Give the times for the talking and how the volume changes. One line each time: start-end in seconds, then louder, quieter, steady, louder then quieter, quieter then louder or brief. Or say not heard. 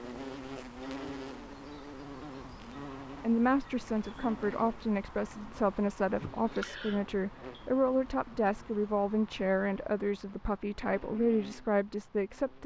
3.2-12.6 steady.